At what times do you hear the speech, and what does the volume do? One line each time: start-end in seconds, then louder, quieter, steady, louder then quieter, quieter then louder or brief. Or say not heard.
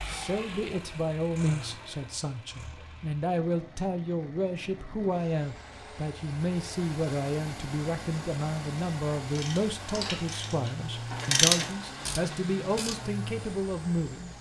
0.1-14.3 steady.